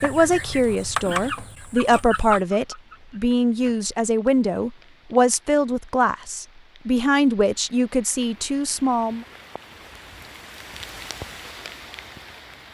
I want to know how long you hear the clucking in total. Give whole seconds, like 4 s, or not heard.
4 s.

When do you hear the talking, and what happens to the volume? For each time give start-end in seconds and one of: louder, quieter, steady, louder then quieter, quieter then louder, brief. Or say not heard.
0.0-9.2 steady.